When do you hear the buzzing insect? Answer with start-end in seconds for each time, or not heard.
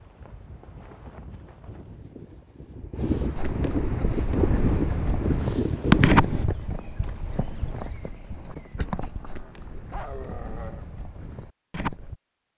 not heard.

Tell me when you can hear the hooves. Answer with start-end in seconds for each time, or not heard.
3.4-12.2.